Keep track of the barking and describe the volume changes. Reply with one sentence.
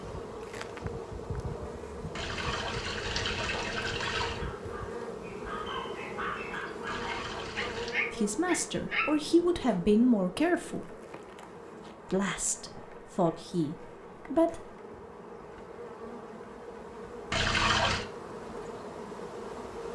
The volume of the barking goes up.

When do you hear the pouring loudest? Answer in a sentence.
The volume of the pouring peaks at 18 seconds.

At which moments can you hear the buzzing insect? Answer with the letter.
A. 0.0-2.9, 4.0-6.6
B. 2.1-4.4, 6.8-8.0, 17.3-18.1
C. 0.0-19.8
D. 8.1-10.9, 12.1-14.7
C.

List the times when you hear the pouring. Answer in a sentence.
The pouring can be heard from 2.1 to 4.4 s, from 6.8 to 8.0 s and from 17.3 to 18.1 s.